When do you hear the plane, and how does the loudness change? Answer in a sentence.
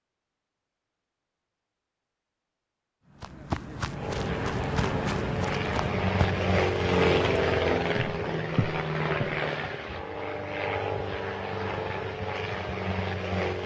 The plane can be heard from 3.9 to 13.6 s, getting louder then quieter.